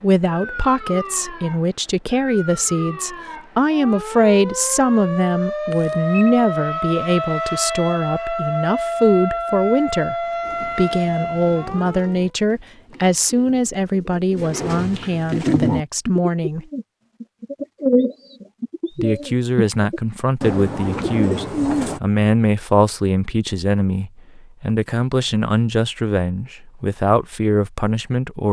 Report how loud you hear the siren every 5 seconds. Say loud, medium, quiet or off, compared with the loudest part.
medium, loud, loud, off, off, off.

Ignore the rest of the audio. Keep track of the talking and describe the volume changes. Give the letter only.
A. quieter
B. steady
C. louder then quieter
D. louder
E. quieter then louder
B.